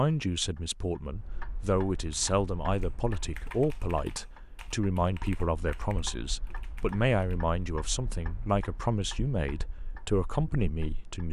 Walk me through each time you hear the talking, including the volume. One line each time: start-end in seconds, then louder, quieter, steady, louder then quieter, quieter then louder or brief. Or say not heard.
0.0-11.2 steady.